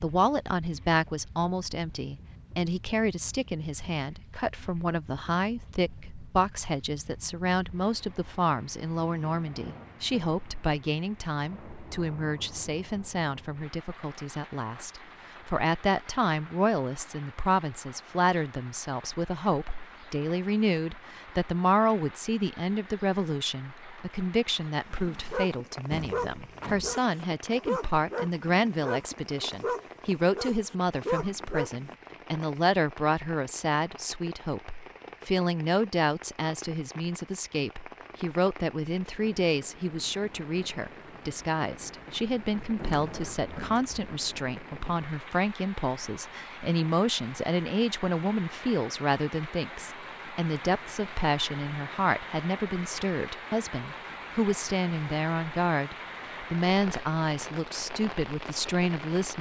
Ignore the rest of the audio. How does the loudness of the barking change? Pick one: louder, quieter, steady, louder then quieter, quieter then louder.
steady.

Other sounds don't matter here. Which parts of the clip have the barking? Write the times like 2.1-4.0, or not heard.
24.9-31.9.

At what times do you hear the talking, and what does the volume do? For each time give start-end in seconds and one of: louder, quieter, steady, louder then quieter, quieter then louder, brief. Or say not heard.
0.0-59.3 steady.